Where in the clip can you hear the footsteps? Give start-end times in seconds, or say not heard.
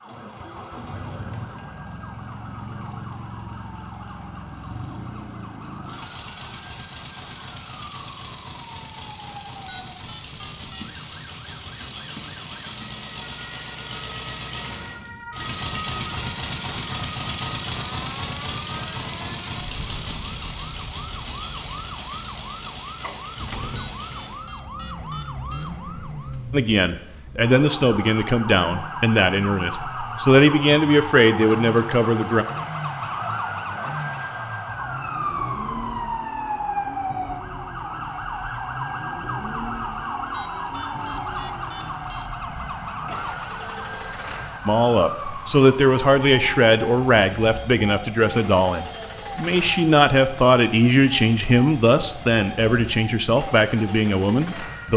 not heard.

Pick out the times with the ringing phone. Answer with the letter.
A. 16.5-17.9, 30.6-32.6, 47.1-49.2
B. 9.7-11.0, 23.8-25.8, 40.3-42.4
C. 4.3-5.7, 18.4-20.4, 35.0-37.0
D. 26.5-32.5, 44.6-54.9
B.